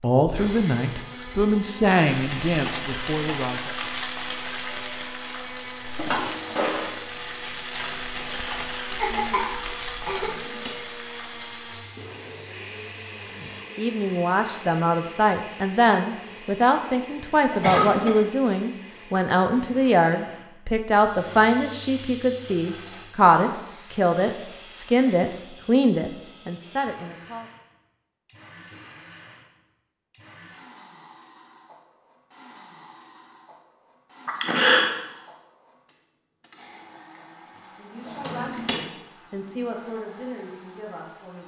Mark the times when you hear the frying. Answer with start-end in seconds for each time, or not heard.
2.0-13.7, 20.9-25.4.